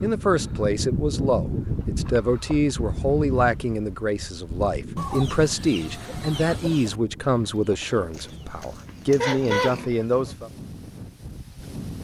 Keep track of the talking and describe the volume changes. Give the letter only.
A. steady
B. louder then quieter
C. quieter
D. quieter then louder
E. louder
A.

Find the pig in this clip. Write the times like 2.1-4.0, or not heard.
8.2-9.8.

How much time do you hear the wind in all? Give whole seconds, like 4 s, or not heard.
12 s.